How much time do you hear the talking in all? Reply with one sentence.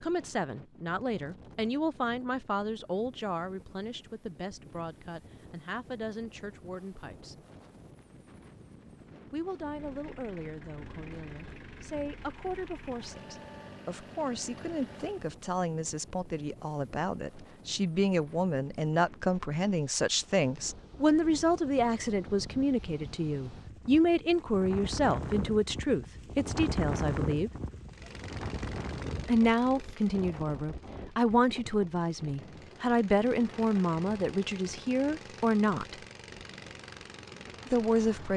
The talking can be heard for 33 seconds in total.